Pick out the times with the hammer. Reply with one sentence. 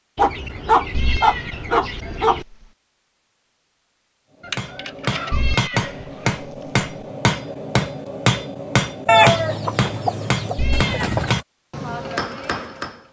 You can hear the hammer from 4.5 to 13.0 s.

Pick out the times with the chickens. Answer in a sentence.
You can hear the chickens from 0.1 to 2.5 s, from 4.4 to 6.3 s and from 9.1 to 11.4 s.